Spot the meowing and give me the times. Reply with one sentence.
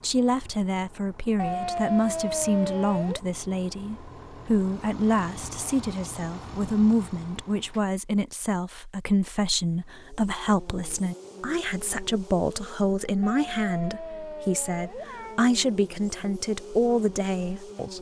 The meowing can be heard from 1.4 to 3.2 s and from 13.2 to 15.4 s.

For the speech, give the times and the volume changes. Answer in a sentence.
You can hear the speech from 0.0 to 17.9 s, at a steady volume.